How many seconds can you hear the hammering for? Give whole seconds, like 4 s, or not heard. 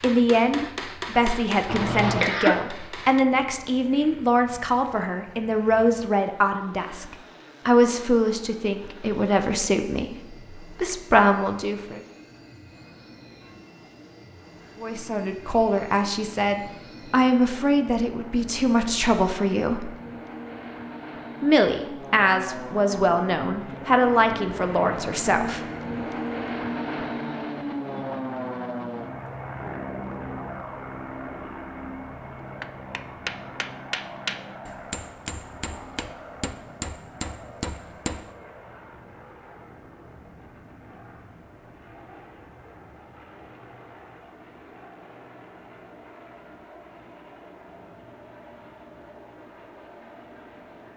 9 s.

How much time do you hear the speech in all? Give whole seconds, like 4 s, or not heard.
21 s.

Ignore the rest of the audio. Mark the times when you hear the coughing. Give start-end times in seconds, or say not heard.
1.6-2.5.